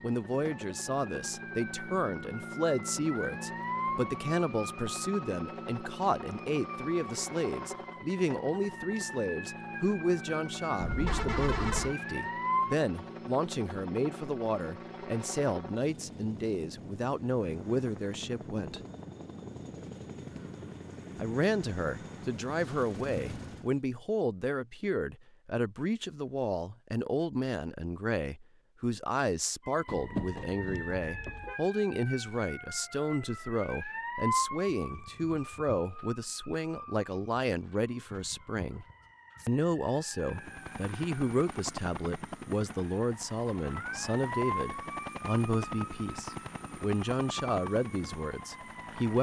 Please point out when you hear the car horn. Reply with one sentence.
You can hear the car horn from 10.8 to 11.9 s and from 29.9 to 31.6 s.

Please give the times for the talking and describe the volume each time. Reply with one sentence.
You can hear the talking from 0.0 to 18.8 s, at a steady volume; from 21.1 to 38.9 s, at a steady volume; and from 39.5 to 49.1 s, at a steady volume.